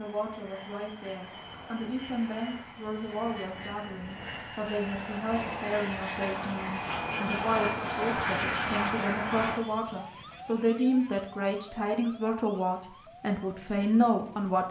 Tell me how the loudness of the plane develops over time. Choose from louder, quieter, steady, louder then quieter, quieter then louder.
louder.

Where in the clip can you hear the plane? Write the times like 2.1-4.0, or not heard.
0.0-9.6.